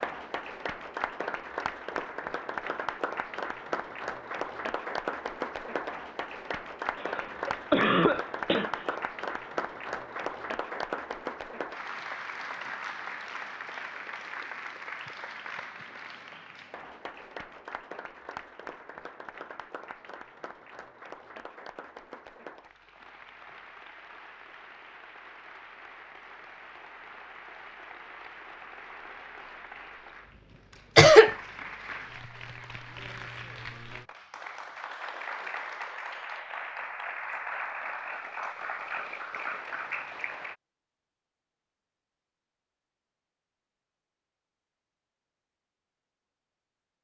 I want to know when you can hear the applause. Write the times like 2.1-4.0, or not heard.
0.0-40.5.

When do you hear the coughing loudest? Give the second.
31 s.